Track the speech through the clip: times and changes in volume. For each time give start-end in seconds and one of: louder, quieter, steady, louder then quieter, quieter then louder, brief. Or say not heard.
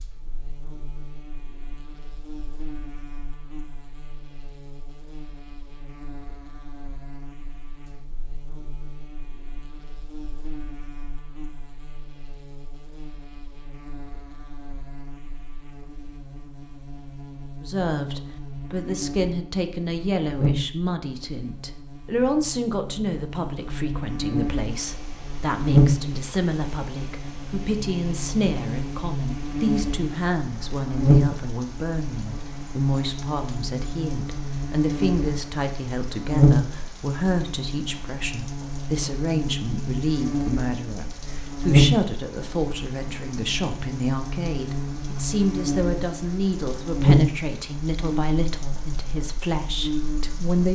17.6-50.6 steady.